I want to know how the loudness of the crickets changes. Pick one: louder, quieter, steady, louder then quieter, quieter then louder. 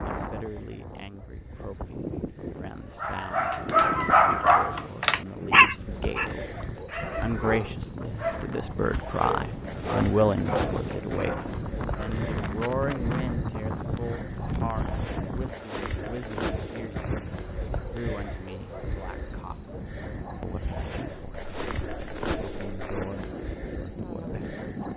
louder.